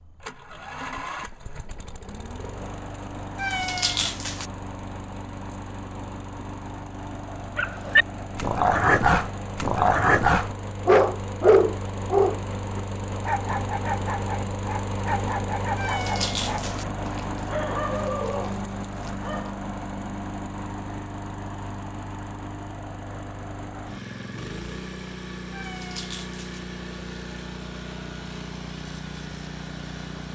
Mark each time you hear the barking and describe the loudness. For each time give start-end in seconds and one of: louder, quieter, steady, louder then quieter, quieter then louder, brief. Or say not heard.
7.5-19.6 quieter.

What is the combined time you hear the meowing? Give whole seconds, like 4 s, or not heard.
3 s.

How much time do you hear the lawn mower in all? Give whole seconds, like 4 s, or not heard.
30 s.